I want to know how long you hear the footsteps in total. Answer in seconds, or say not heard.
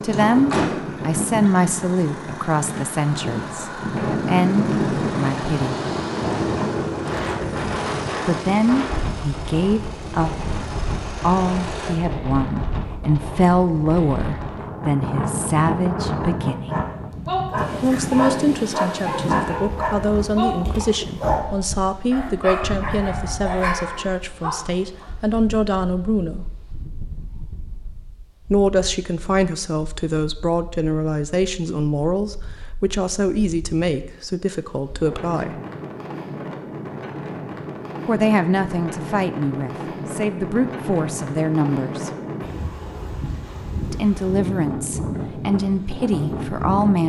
not heard.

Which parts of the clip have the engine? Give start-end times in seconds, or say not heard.
0.0-11.9.